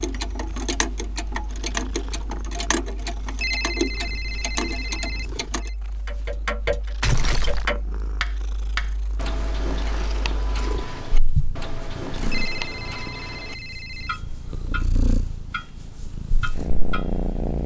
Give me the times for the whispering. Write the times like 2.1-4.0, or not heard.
not heard.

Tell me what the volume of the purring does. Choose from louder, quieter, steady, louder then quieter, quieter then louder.
louder.